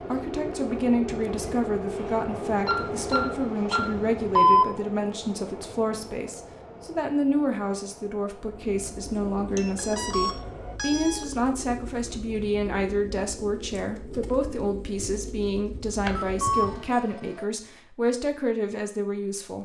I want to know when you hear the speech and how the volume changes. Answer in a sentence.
The speech can be heard from 0.1 to 19.6 s, at a steady volume.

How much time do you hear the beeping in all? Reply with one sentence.
The beeping can be heard for 5 seconds in total.